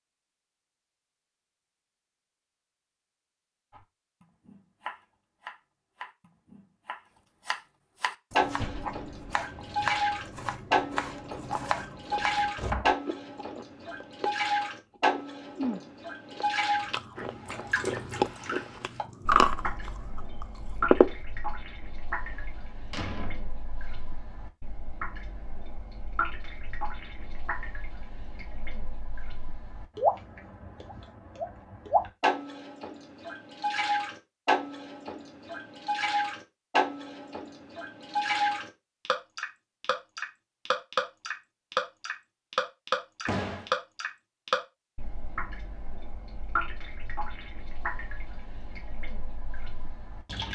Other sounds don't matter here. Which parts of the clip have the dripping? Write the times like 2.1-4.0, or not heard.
8.3-50.5.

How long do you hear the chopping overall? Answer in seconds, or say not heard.
9 s.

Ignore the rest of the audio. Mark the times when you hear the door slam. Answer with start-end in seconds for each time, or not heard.
8.6-9.0, 22.3-23.9, 43.2-43.7.